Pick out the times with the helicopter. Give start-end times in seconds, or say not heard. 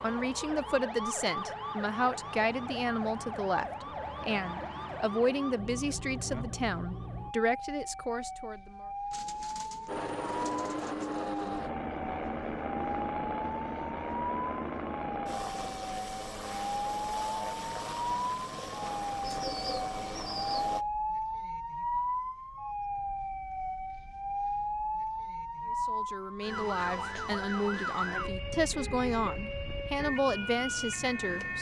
9.8-20.9.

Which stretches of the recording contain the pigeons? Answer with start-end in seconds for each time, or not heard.
9.1-11.6, 19.2-20.9.